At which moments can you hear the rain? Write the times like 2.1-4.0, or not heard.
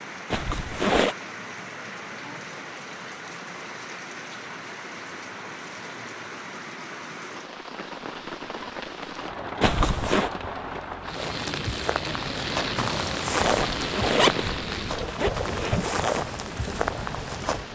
0.0-17.7.